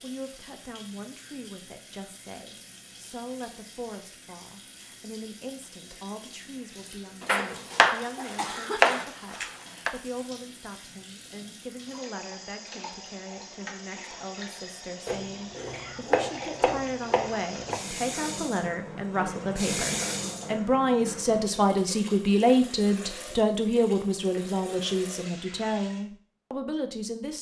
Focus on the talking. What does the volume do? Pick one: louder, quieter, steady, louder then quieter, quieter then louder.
louder.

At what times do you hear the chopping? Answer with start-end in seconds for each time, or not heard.
7.2-9.9, 15.1-17.8.